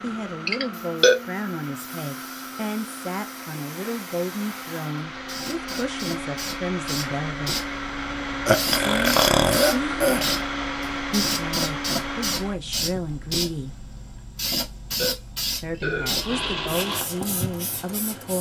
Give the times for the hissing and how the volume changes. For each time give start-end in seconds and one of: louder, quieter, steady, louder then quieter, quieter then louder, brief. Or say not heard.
0.0-18.3 louder.